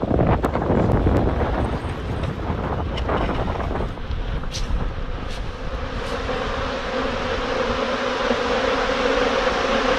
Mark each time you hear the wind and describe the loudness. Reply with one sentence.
The wind can be heard from 0.0 to 9.8 s, getting quieter.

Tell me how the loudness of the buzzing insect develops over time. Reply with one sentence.
The loudness of the buzzing insect goes up.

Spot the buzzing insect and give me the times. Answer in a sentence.
The buzzing insect can be heard from 0.0 to 9.9 s.